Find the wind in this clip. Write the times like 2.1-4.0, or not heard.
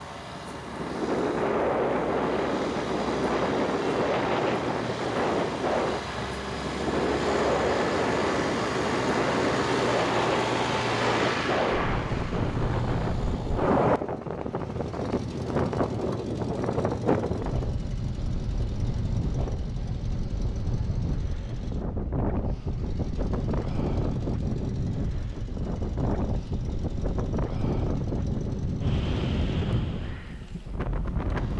0.0-31.5.